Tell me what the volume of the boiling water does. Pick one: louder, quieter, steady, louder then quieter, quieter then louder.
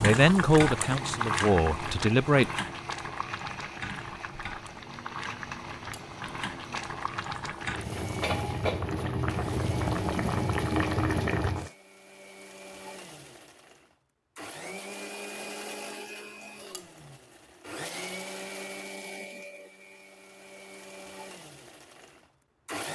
quieter then louder.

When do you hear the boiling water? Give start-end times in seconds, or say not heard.
0.0-11.7.